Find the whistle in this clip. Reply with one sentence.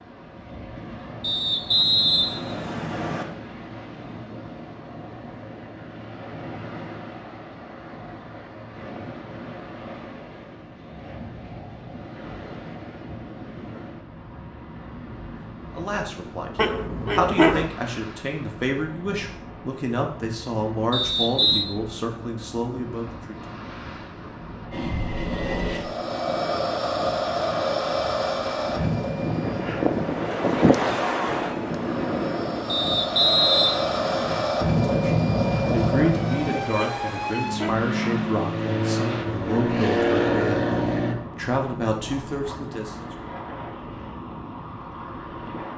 The whistle can be heard from 1.2 to 3.2 s, from 20.9 to 21.6 s and from 32.6 to 34.5 s.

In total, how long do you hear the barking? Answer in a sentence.
You can hear the barking for 2 seconds altogether.